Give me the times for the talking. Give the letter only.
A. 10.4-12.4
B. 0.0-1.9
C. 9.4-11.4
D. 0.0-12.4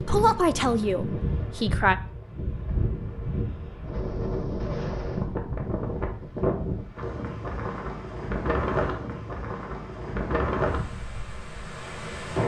B.